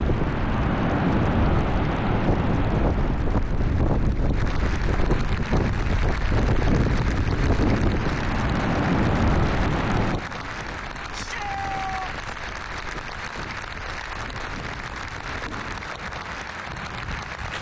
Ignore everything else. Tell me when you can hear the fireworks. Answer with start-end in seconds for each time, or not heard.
not heard.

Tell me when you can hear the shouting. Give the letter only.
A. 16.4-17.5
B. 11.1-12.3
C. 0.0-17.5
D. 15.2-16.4
B.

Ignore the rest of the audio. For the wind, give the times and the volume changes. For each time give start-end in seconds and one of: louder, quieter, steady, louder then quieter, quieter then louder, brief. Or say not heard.
0.0-17.5 quieter.